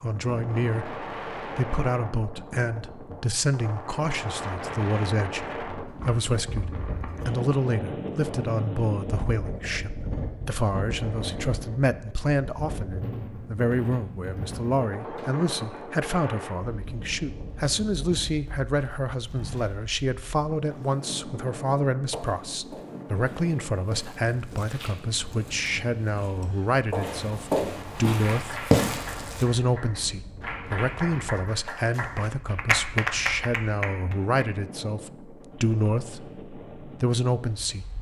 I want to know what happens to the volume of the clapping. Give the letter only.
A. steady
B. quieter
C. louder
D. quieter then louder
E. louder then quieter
C.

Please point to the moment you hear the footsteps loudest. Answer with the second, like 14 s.
29 s.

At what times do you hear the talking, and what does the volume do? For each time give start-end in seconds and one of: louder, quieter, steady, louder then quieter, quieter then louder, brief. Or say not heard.
0.0-37.9 steady.